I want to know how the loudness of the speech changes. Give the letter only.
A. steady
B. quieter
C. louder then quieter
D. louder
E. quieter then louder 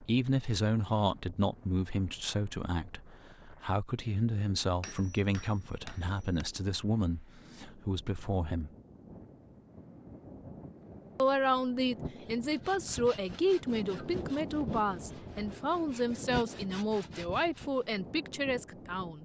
A.